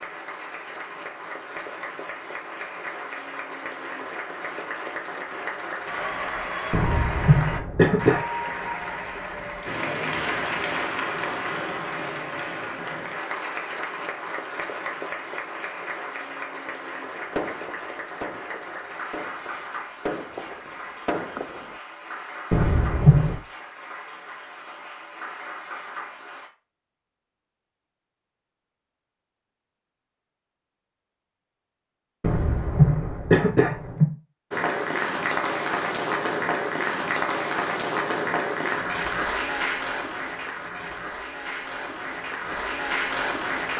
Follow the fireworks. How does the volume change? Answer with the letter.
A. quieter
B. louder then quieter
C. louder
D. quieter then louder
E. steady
D.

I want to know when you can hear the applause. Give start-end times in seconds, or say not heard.
0.0-26.5, 34.5-43.7.